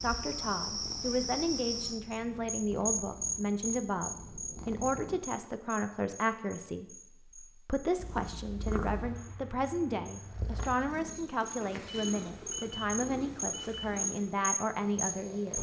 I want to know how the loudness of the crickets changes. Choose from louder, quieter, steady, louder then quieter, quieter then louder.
quieter then louder.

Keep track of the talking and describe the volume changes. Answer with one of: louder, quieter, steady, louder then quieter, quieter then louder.
steady.